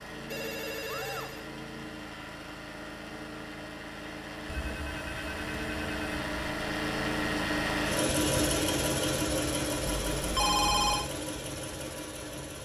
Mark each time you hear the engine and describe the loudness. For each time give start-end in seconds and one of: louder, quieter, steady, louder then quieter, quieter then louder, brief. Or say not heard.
0.0-12.6 louder then quieter.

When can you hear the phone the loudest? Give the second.
11 s.